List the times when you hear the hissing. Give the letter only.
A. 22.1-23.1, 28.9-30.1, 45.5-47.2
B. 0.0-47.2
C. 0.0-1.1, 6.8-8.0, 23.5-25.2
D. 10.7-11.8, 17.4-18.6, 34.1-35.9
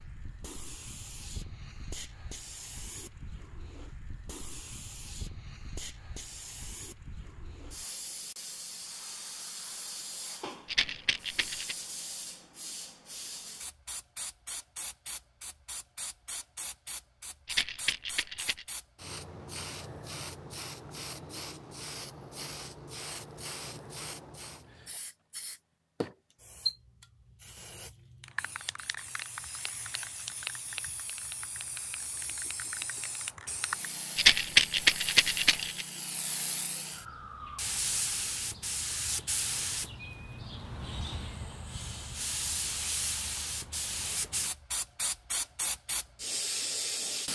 B.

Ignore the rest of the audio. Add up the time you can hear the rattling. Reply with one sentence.
You can hear the rattling for 4 seconds altogether.